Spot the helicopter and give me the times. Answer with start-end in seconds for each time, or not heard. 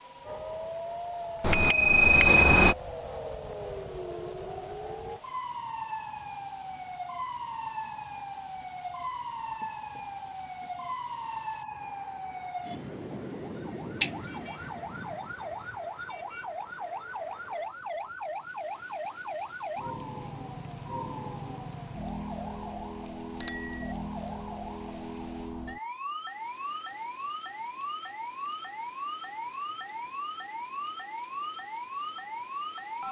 not heard.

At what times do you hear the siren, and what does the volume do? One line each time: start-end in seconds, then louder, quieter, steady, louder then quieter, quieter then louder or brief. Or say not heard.
0.0-33.0 steady.